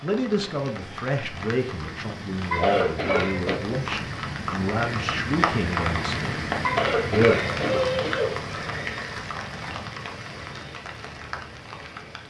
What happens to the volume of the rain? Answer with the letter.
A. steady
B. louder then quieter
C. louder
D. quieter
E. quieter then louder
B.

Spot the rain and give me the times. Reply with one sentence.
You can hear the rain from 0.0 to 12.2 s.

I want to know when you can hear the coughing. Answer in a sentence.
The coughing can be heard from 2.5 to 3.6 s and from 6.6 to 8.4 s.